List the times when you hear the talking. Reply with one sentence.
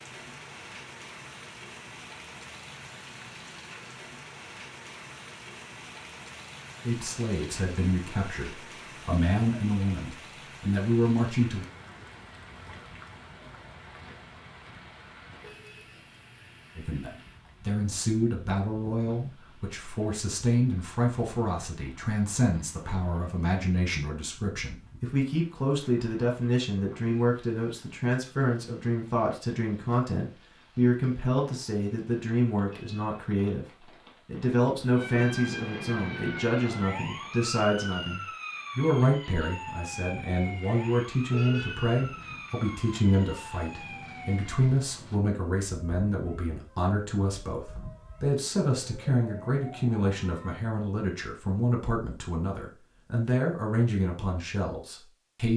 You can hear the talking from 6.8 to 11.7 s and from 16.8 to 55.5 s.